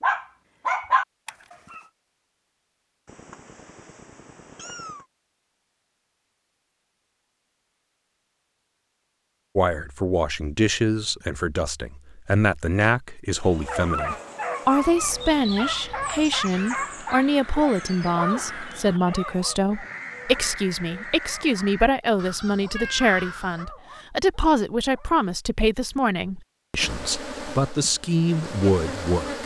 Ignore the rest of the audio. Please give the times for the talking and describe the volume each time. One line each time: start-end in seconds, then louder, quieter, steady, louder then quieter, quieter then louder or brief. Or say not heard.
9.6-29.4 steady.